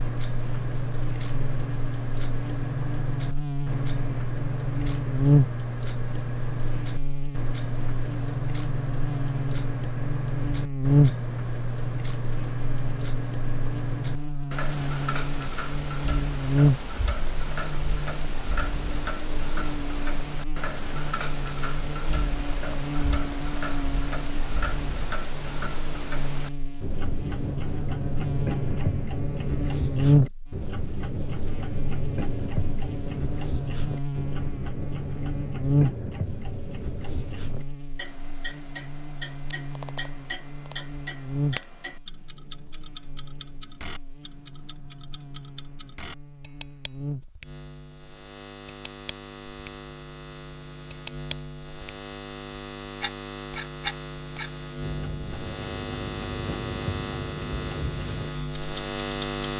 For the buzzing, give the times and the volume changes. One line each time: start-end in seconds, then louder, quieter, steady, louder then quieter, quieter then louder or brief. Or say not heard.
0.0-59.5 quieter.